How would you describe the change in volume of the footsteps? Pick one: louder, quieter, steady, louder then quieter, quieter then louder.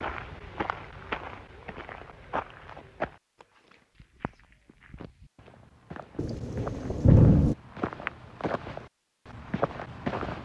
quieter then louder.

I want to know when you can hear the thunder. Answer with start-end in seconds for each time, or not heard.
6.2-7.5.